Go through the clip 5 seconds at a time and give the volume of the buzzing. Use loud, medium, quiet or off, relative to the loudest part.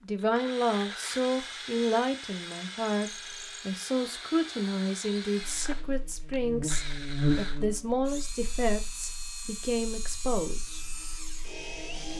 off, loud, quiet.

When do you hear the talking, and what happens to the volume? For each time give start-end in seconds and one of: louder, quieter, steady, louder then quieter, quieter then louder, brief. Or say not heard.
0.0-10.8 steady.